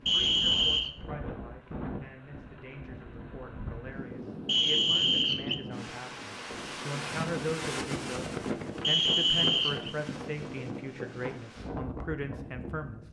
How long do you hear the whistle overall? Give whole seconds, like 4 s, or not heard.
3 s.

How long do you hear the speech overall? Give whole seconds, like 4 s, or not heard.
13 s.